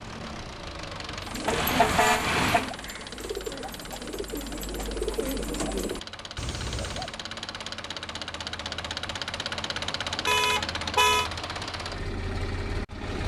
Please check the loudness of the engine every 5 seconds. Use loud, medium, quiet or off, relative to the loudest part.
medium, loud, loud.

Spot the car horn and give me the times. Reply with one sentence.
You can hear the car horn from 1.4 to 2.7 s and from 10.2 to 11.3 s.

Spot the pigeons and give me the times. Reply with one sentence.
The pigeons can be heard from 1.2 to 7.2 s.